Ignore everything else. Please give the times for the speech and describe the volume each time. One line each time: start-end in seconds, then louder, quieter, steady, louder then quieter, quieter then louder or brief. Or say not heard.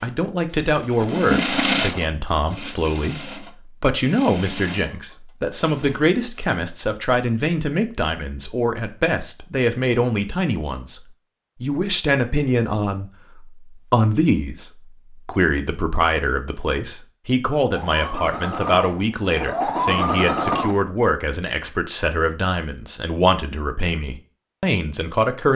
0.0-11.0 steady
11.6-25.5 steady.